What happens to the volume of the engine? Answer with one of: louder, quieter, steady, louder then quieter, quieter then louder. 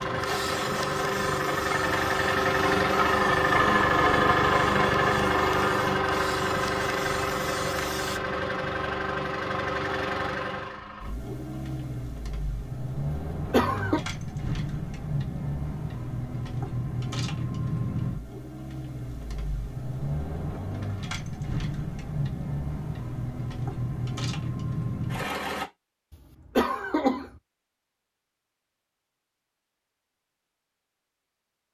quieter.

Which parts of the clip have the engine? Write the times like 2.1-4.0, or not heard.
0.0-25.6.